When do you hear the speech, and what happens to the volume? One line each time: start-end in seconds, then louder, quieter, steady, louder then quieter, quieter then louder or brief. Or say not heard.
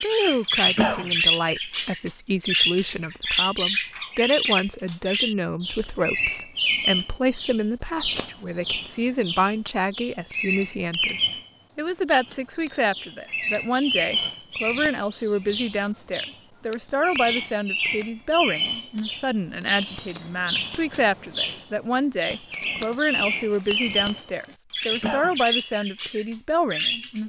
0.0-27.2 steady.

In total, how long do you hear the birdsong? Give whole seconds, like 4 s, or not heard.
27 s.